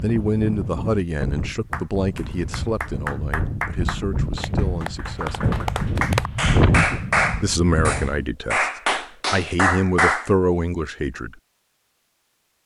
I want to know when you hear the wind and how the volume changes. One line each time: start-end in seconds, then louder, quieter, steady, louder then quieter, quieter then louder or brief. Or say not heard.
0.0-8.2 louder.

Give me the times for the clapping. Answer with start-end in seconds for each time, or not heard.
1.7-10.3.